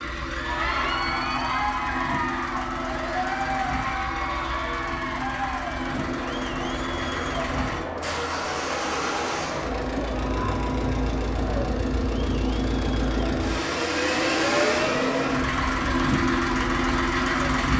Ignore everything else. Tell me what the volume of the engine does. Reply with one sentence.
The volume of the engine goes up.